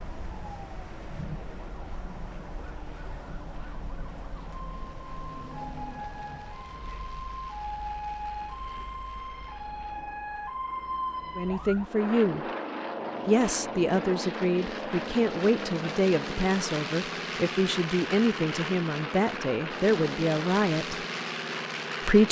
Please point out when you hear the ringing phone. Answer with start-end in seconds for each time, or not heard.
not heard.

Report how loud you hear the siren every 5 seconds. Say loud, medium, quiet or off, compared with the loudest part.
medium, loud, loud, off, off.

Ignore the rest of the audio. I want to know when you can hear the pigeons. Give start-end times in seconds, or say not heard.
not heard.